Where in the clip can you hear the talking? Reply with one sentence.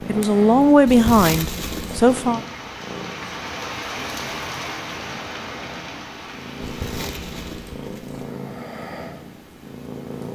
The talking can be heard from 0.1 to 2.4 s.